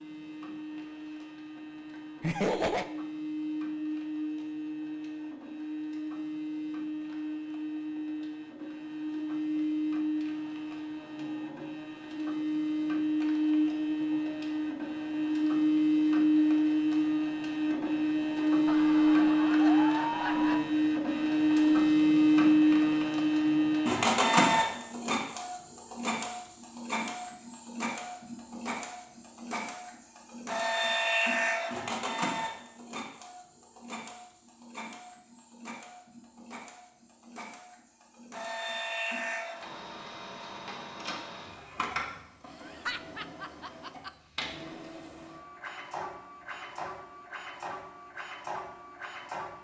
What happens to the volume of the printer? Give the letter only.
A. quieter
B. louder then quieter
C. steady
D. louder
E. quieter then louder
B.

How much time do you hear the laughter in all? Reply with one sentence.
The laughter can be heard for 4 seconds in total.